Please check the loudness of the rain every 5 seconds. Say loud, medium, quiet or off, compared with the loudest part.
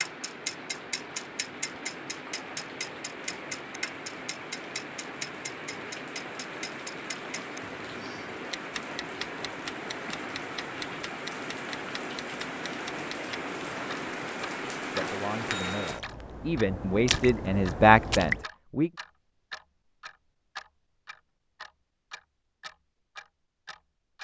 medium, medium, loud, loud, off.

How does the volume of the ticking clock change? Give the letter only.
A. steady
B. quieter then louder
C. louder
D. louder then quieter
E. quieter
E.